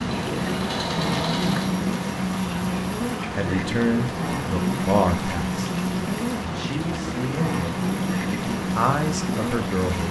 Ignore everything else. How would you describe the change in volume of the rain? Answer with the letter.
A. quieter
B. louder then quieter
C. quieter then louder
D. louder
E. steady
E.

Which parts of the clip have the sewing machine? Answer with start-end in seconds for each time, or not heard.
0.0-1.8.